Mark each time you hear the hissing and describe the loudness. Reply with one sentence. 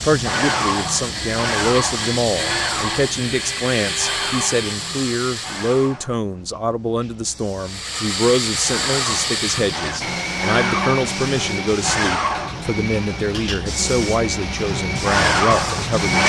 The hissing can be heard from 0.0 to 16.2 s, getting quieter then louder.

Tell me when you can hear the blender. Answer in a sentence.
You can hear the blender from 0.0 to 6.0 s and from 7.6 to 16.2 s.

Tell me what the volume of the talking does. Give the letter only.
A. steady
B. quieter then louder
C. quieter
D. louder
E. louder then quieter
A.